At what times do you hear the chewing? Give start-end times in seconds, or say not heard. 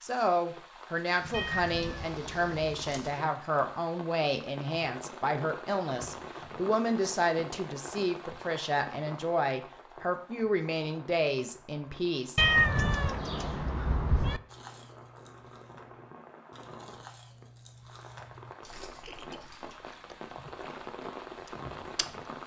14.4-22.4.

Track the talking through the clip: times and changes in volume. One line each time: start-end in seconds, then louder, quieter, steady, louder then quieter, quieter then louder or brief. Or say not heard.
0.0-12.4 steady.